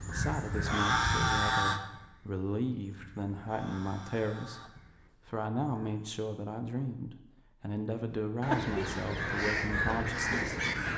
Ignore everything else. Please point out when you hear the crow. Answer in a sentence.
The crow can be heard from 0.0 to 6.0 s and from 8.4 to 10.9 s.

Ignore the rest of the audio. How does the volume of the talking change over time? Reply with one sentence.
The loudness of the talking stays about the same.